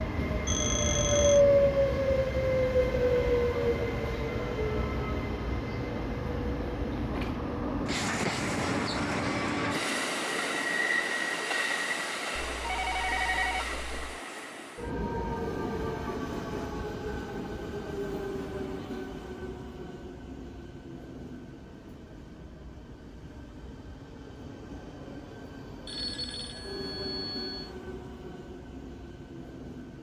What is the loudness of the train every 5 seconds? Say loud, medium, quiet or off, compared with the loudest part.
loud, medium, medium, medium, quiet, quiet.